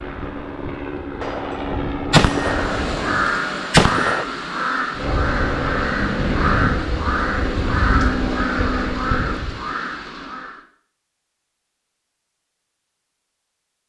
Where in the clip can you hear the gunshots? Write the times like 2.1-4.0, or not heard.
1.2-4.2.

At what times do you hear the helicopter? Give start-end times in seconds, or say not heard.
0.0-3.3, 5.0-9.6.